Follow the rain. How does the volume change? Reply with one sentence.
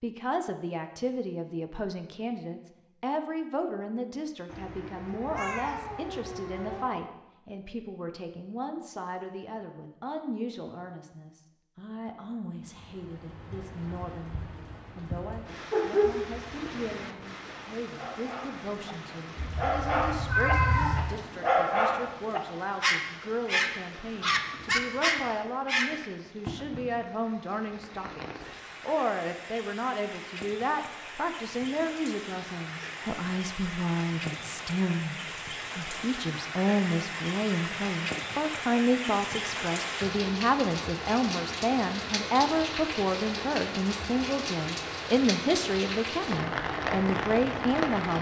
The volume of the rain goes up.